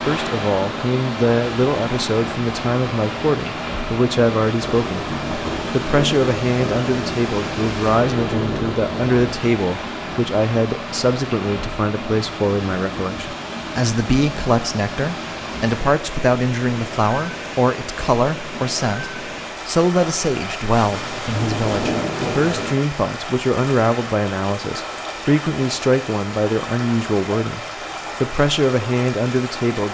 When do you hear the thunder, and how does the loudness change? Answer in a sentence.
You can hear the thunder from 4.6 to 9.4 s, at a steady volume; and briefly from 20.7 to 22.8 s.